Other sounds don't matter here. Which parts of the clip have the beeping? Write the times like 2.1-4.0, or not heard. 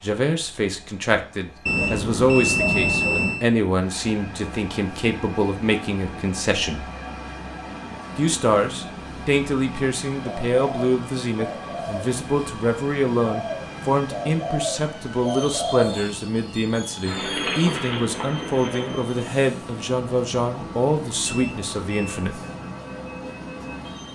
1.6-3.5, 21.2-22.2.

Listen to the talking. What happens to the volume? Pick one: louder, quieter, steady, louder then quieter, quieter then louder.
steady.